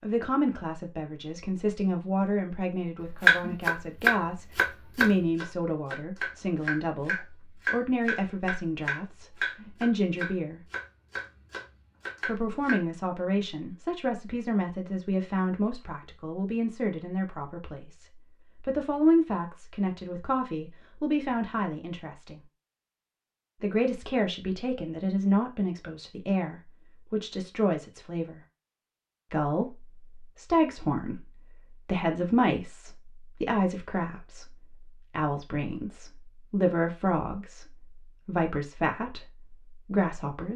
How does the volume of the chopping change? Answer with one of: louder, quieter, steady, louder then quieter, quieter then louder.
quieter.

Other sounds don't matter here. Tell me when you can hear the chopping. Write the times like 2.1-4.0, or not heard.
3.2-12.8.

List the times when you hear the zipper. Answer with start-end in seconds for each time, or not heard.
not heard.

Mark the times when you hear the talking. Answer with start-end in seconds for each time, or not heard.
0.0-10.6, 12.2-22.4, 23.6-28.4, 29.3-40.5.